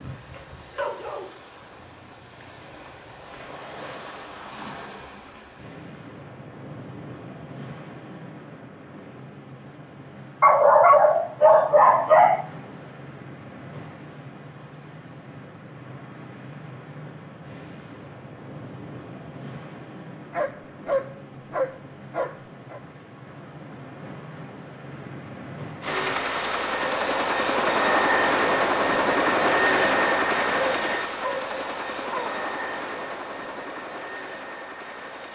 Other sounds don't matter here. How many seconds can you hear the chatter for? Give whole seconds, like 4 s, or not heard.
not heard.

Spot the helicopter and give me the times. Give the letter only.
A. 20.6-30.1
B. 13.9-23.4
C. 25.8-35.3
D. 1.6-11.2
C.